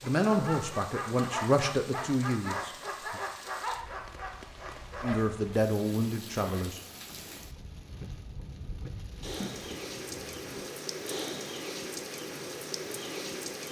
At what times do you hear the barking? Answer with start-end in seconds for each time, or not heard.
0.0-5.4.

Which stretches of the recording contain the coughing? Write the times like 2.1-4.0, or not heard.
9.2-10.7.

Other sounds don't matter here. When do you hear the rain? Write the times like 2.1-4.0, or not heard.
0.0-13.6.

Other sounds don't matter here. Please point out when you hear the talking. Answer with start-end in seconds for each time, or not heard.
0.0-3.2, 5.0-6.8.